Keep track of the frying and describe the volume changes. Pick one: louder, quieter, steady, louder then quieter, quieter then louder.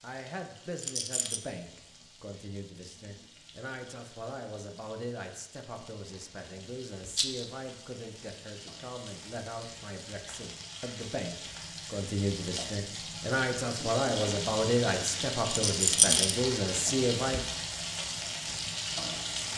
louder.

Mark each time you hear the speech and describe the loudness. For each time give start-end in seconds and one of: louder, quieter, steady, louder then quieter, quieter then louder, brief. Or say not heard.
0.0-17.4 louder.